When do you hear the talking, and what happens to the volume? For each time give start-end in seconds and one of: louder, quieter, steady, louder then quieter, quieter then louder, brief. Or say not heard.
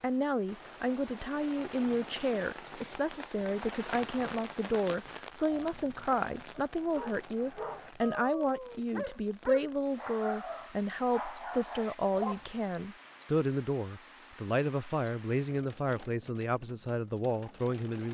0.0-18.1 steady.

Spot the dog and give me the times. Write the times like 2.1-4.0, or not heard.
5.4-12.6.